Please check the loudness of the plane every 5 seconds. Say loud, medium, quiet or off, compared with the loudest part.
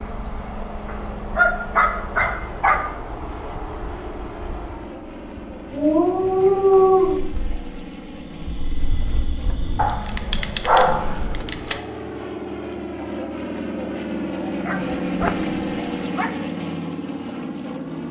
medium, medium, loud, loud.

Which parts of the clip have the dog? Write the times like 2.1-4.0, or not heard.
0.8-2.9, 5.7-7.2, 9.8-11.8, 14.7-16.3.